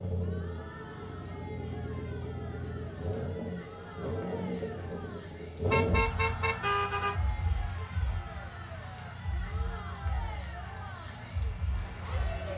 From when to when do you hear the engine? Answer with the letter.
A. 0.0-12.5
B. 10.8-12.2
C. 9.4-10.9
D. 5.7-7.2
A.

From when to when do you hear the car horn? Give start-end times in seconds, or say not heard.
5.7-7.2.